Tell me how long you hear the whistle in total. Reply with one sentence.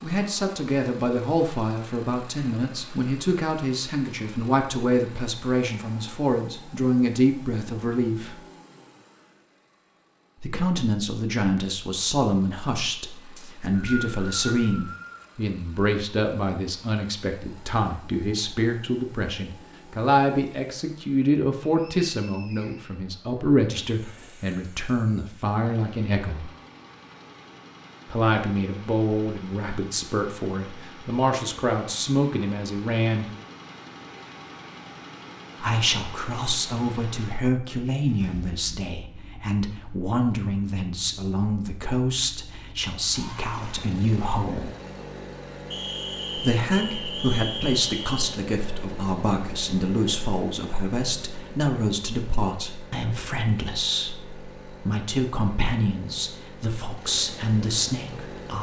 The whistle can be heard for 6 seconds in total.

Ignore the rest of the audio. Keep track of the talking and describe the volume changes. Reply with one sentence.
The volume of the talking stays about the same.